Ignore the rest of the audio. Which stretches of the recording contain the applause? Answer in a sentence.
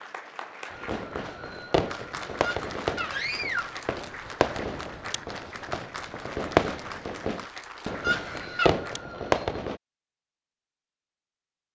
The applause can be heard from 0.0 to 9.2 s.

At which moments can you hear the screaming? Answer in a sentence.
The screaming can be heard from 2.4 to 3.9 s and from 8.0 to 8.8 s.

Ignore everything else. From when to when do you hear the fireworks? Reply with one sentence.
You can hear the fireworks from 0.7 to 9.8 s.